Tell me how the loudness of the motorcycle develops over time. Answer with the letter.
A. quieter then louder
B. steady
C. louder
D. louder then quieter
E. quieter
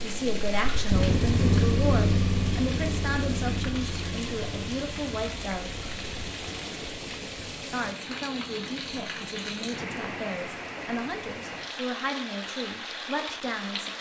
E.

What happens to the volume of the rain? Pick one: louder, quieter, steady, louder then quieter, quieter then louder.
steady.